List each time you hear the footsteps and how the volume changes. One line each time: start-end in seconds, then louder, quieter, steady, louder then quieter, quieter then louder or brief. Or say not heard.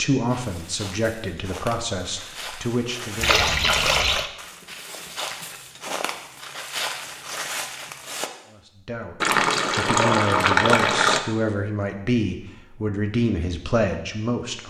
0.2-8.3 louder.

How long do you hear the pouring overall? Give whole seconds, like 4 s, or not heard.
3 s.